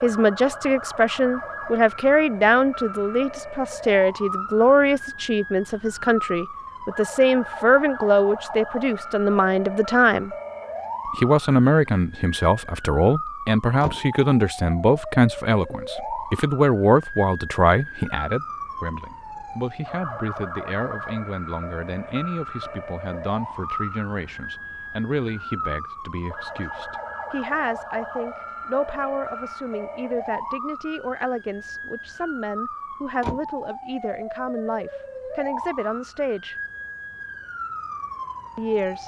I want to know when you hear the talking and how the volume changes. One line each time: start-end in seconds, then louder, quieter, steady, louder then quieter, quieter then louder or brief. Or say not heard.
0.0-10.3 steady
11.1-36.5 quieter
38.5-39.0 brief.